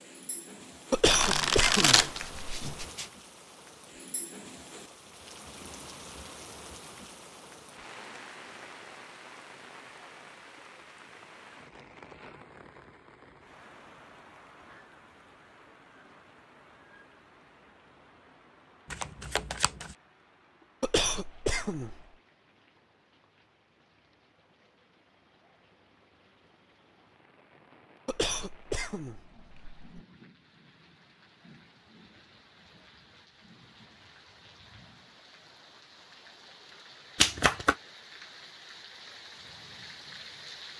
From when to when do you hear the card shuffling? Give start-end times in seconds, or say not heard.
1.1-3.0, 18.9-19.9, 37.1-37.8.